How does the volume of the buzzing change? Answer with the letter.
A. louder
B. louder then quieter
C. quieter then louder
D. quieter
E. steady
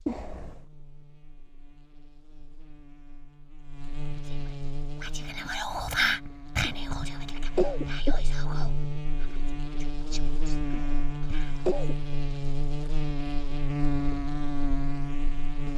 A.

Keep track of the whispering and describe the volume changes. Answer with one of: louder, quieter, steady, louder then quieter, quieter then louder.
louder then quieter.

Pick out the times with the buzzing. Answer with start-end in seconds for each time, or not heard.
0.0-15.7.